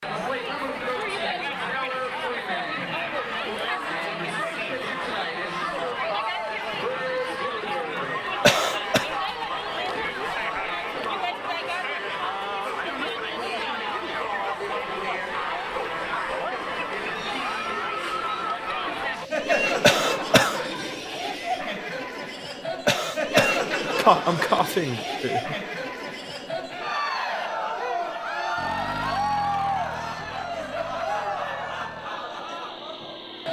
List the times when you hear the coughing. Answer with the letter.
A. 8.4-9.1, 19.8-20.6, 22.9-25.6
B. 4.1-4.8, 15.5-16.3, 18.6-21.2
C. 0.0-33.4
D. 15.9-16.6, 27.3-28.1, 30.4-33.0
A.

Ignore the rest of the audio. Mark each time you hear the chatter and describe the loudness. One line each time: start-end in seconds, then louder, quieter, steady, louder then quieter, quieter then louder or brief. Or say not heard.
0.0-33.4 steady.